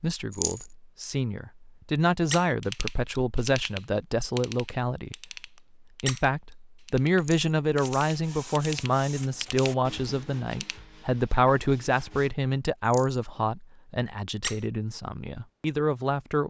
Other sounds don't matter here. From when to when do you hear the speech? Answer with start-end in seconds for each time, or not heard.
0.0-5.2, 6.0-16.4.